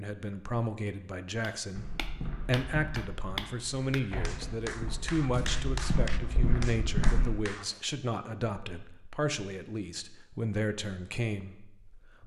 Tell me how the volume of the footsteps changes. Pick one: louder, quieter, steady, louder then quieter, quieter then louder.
quieter then louder.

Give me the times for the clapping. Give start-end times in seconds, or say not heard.
1.4-7.9.